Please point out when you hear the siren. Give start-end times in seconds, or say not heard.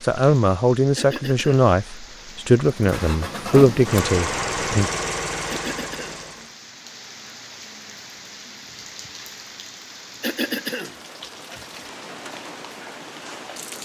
not heard.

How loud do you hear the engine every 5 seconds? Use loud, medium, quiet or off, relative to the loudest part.
loud, loud, off.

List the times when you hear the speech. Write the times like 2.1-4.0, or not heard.
0.0-4.9.